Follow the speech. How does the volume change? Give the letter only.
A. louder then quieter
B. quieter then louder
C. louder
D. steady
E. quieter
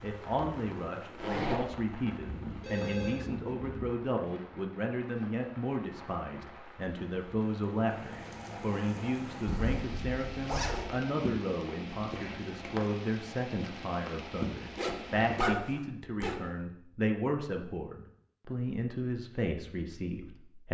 D.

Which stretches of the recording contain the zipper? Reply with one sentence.
The zipper can be heard from 1.1 to 1.6 s, from 9.4 to 10.9 s and from 14.8 to 16.4 s.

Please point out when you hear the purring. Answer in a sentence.
You can't hear the purring here.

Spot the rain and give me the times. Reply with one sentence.
You can hear the rain from 0.0 to 15.4 s.